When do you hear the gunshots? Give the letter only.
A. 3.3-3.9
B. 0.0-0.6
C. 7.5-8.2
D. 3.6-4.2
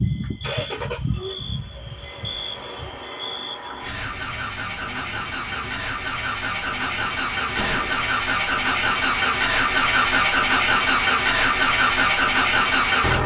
C.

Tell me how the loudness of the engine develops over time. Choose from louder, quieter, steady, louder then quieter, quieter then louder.
louder.